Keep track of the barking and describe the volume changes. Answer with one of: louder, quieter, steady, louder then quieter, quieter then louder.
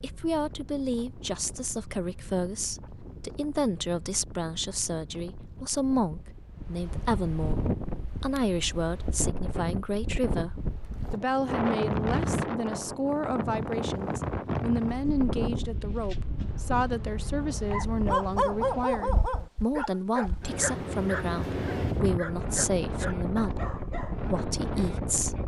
quieter.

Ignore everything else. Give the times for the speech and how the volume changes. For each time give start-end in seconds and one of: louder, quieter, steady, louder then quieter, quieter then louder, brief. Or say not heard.
0.0-25.4 steady.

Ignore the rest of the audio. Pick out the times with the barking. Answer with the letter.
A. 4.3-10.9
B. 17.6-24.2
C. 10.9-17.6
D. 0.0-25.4
B.